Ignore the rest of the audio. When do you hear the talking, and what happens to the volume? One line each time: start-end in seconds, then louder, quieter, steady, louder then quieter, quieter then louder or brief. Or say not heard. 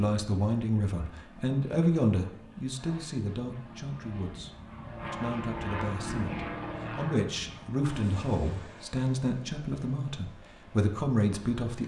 0.0-11.8 quieter then louder.